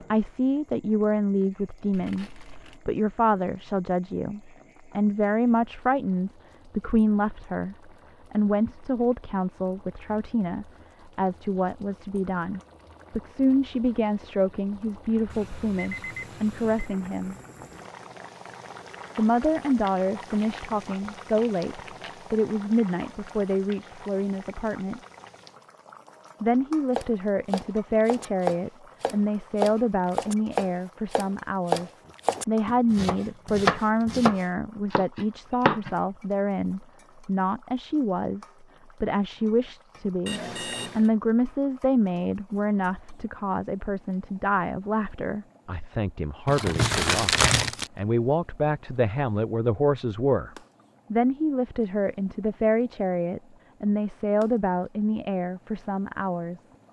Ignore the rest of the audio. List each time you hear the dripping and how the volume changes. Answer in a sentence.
You can't hear the dripping here.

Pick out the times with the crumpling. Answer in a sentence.
You can hear the crumpling from 1.9 to 2.8 s, from 20.3 to 22.2 s and from 46.5 to 47.9 s.